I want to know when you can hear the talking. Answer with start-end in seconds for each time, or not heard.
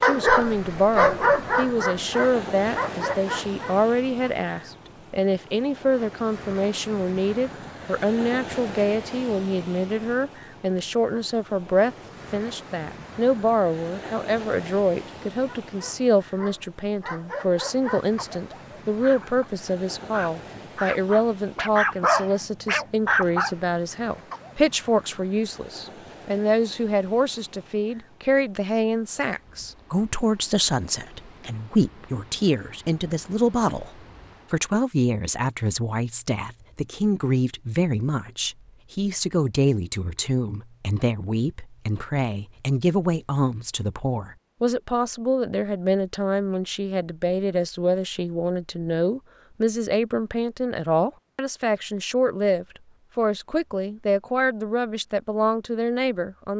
0.0-56.5.